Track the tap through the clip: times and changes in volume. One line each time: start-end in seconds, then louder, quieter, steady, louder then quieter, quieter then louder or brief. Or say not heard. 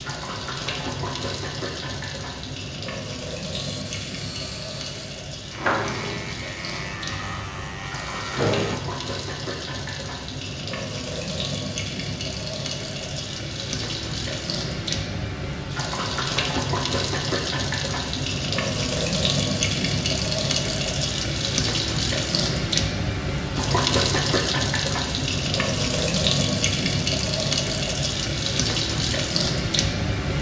0.0-30.3 louder.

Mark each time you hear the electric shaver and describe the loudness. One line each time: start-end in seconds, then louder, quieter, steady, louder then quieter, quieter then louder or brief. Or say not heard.
3.8-8.8 louder then quieter.